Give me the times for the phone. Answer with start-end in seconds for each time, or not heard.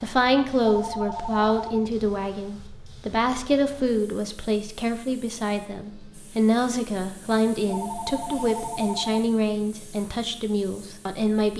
0.7-1.9, 7.7-9.1.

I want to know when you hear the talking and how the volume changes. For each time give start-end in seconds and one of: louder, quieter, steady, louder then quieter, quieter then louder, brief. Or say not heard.
0.0-11.5 steady.